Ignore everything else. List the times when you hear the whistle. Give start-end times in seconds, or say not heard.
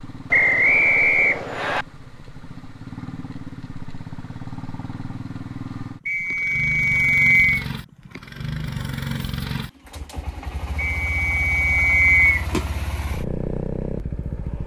0.3-1.9, 6.0-7.7, 10.8-12.4.